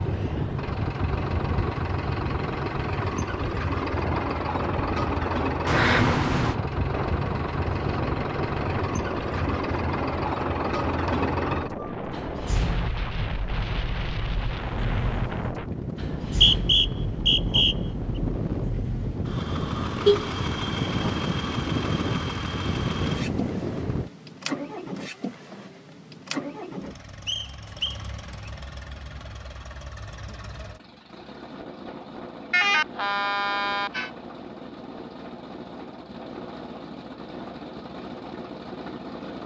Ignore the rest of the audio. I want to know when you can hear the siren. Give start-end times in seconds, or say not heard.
not heard.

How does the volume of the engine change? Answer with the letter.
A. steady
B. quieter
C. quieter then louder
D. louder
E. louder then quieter
B.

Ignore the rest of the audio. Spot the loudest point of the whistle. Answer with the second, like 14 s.
17 s.